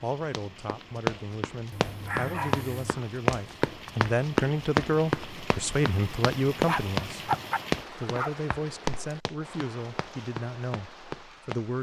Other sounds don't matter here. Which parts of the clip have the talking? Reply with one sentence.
The talking can be heard from 0.0 to 7.3 s and from 7.9 to 11.7 s.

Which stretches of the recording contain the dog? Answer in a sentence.
You can hear the dog from 1.7 to 3.0 s and from 6.7 to 8.3 s.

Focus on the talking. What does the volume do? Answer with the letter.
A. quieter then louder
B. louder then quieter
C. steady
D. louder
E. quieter
B.